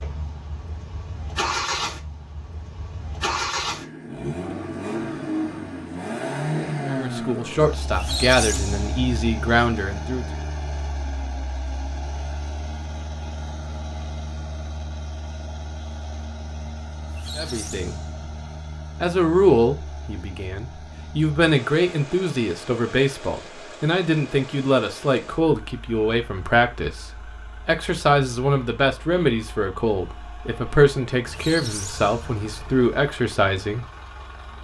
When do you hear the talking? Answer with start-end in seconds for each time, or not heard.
6.8-10.2, 17.4-17.9, 19.0-33.9.